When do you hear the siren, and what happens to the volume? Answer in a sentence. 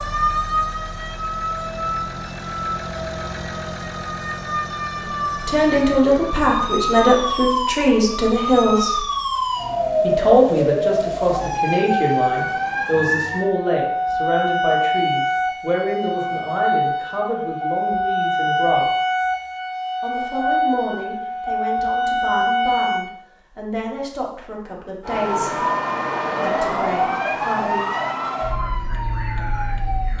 The siren can be heard from 0.0 to 23.1 s, getting louder; and from 25.0 to 30.1 s, getting quieter.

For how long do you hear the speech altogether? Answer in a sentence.
You can hear the speech for 20 seconds altogether.